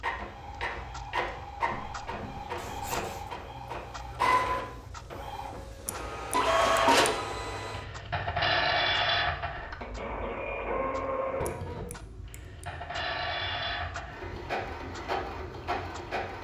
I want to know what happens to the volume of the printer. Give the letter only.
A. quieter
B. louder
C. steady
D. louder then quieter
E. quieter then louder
D.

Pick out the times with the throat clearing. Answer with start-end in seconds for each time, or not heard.
not heard.